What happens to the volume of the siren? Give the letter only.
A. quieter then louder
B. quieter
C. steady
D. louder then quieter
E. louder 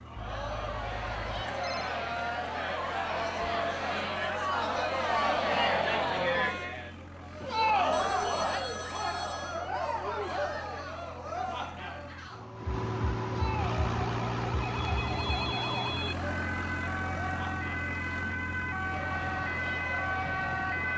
E.